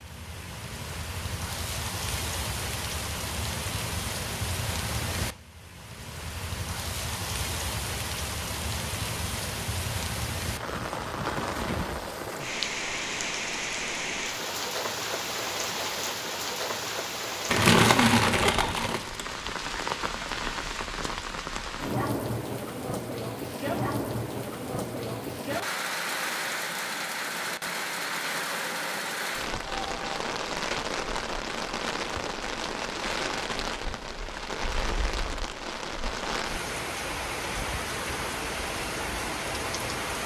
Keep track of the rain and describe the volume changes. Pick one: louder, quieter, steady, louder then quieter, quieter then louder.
steady.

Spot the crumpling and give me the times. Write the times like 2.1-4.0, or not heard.
17.5-19.2.